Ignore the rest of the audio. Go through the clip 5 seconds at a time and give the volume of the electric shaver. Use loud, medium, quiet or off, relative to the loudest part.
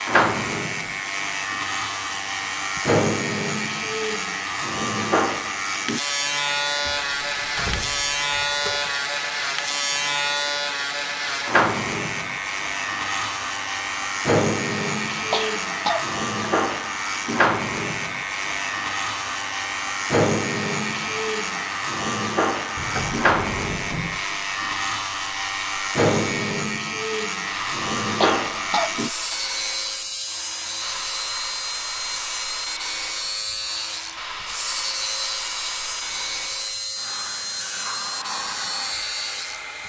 loud, loud, loud, loud, loud, loud, medium, medium.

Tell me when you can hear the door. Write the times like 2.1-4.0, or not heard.
6.8-8.9, 22.8-24.2.